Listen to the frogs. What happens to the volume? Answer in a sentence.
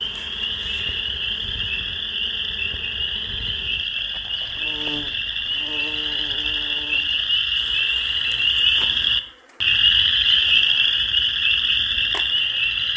The volume of the frogs goes up.